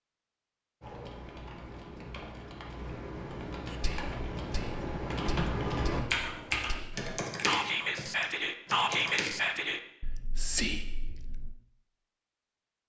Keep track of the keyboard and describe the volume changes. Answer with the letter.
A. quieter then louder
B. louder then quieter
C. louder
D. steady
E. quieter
B.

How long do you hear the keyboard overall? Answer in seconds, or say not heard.
9 s.